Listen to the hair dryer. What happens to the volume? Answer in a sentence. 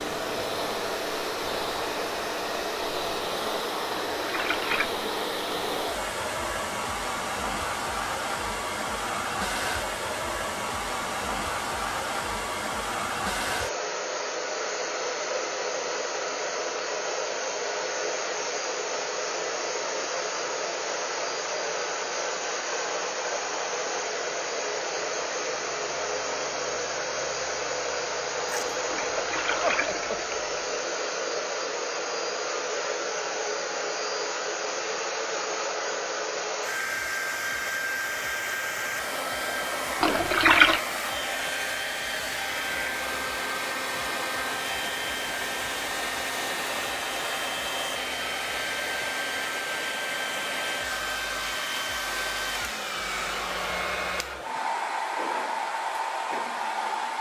The volume of the hair dryer stays about the same.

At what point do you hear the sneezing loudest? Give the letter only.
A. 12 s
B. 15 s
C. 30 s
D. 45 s
C.